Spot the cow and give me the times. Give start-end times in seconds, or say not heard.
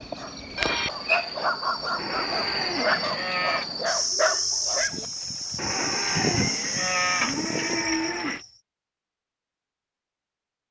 1.9-3.6, 5.5-8.4.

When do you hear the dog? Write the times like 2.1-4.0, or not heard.
0.0-5.0.